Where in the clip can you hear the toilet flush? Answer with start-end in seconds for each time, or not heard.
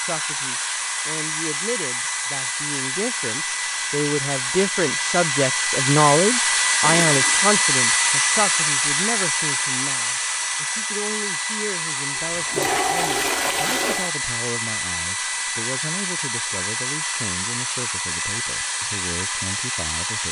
6.8-7.4, 12.2-14.1.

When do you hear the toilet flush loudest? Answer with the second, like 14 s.
13 s.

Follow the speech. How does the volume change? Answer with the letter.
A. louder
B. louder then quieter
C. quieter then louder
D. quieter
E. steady
B.